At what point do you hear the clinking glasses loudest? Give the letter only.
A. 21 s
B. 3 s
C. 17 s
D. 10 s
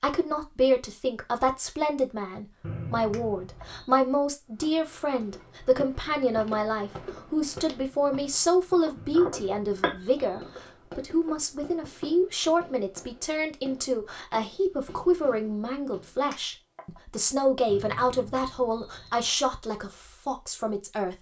D.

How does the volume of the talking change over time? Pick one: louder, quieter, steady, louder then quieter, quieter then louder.
steady.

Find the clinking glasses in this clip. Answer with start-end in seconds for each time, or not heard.
3.1-3.6, 9.2-10.6, 16.3-16.8.